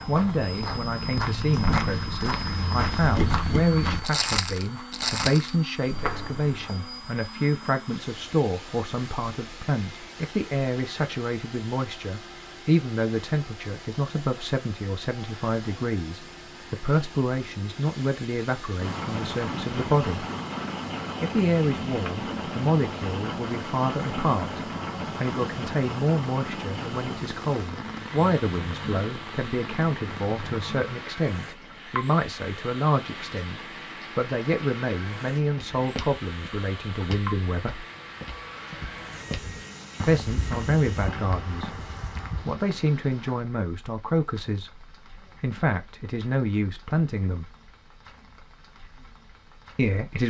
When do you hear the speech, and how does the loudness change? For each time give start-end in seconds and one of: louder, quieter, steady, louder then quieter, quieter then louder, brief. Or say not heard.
0.1-20.2 steady
21.2-37.9 steady
40.0-41.8 brief
42.5-47.5 quieter then louder
49.8-50.2 brief.